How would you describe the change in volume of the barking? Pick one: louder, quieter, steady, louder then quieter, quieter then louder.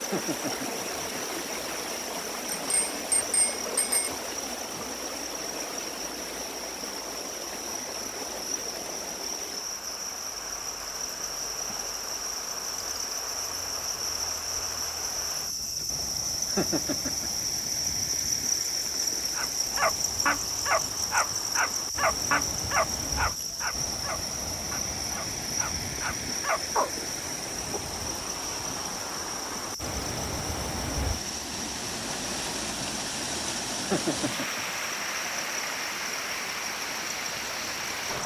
quieter then louder.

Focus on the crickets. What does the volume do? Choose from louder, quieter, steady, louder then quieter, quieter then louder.
louder then quieter.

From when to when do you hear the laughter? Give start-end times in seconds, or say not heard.
0.0-0.8, 16.4-17.4, 33.8-34.8.